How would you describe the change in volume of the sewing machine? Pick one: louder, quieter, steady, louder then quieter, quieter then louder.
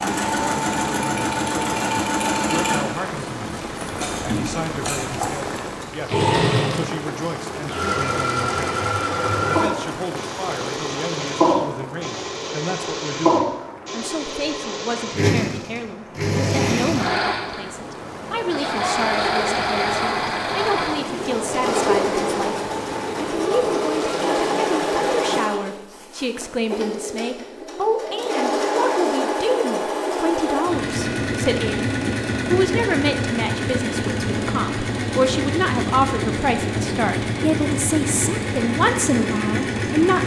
steady.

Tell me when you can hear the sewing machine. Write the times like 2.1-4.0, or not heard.
0.0-40.2.